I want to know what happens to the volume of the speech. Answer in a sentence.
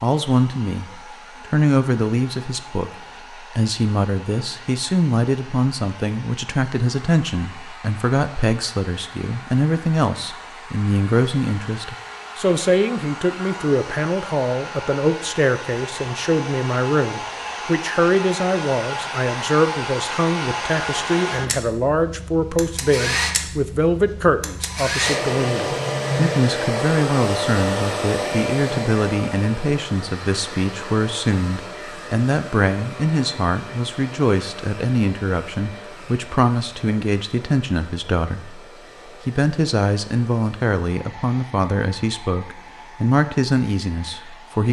The volume of the speech stays about the same.